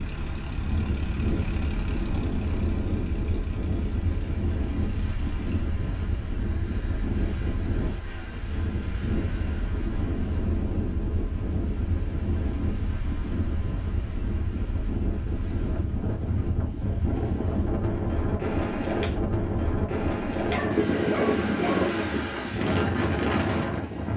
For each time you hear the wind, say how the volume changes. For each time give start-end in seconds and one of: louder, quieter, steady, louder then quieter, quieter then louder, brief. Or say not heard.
0.0-24.1 louder.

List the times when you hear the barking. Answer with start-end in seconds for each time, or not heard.
20.5-21.9.